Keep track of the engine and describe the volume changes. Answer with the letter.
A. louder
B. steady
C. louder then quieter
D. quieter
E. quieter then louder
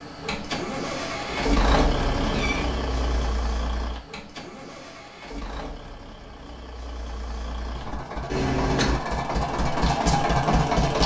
E.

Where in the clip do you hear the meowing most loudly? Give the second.
9 s.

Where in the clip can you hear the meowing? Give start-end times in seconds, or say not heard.
1.2-3.3, 8.2-9.0.